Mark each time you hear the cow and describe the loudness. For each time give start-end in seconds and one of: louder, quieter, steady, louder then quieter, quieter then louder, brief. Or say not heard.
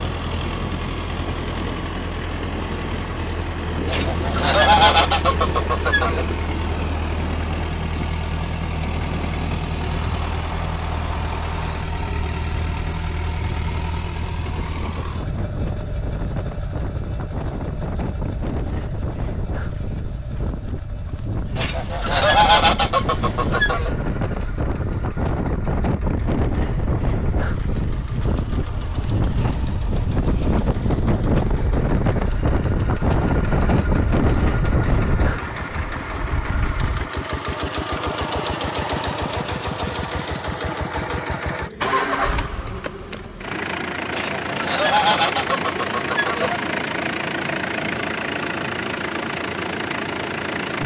not heard.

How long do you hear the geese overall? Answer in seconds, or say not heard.
7 s.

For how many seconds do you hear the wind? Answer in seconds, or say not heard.
37 s.